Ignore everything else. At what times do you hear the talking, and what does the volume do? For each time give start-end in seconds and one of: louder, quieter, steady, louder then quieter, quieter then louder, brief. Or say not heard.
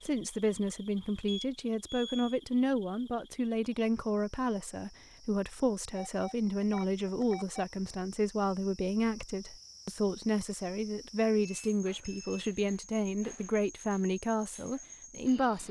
0.0-15.6 steady.